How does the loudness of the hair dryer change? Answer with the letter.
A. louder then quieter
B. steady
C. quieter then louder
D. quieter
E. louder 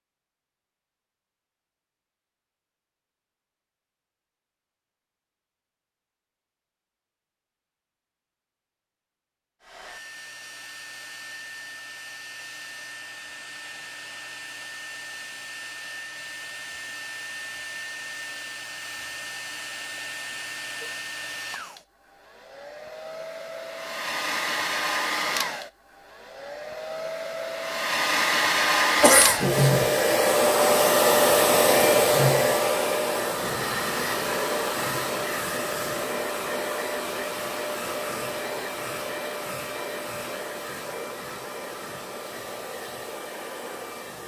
A.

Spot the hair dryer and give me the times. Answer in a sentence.
The hair dryer can be heard from 9.6 to 44.2 s.